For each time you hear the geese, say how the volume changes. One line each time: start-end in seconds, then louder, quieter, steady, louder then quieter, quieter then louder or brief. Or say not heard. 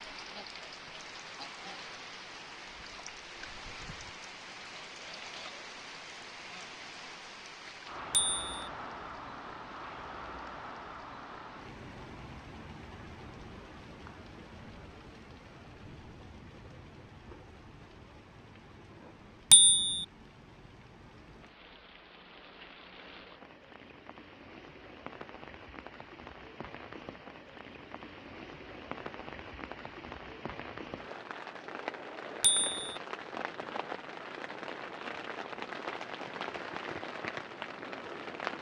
not heard.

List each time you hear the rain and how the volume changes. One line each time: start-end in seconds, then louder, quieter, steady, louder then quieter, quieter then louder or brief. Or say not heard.
0.0-38.5 quieter then louder.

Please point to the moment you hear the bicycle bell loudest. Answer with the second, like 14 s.
20 s.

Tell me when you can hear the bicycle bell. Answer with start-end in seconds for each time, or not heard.
8.1-8.7, 19.5-20.1, 32.4-33.0.